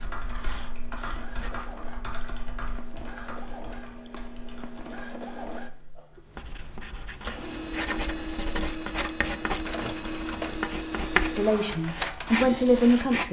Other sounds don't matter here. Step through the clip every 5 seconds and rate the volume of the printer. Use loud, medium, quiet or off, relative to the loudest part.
medium, loud, loud.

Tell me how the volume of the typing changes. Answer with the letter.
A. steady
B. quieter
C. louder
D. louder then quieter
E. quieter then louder
B.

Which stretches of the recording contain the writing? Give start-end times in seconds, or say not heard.
0.2-1.7, 6.2-13.2.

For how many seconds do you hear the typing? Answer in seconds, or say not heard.
6 s.